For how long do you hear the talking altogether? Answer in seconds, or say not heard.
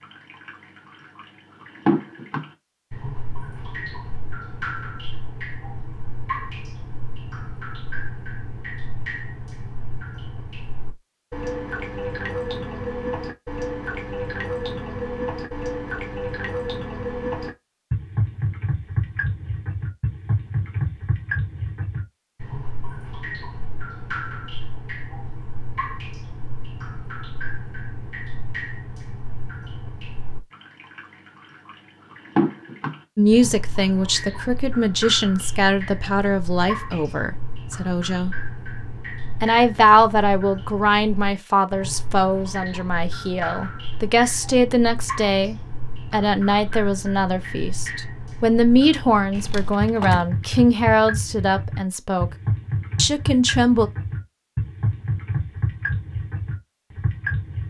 19 s.